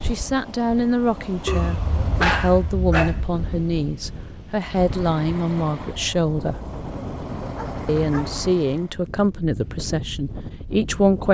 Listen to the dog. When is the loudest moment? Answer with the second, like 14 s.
2 s.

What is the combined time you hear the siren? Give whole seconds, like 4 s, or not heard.
not heard.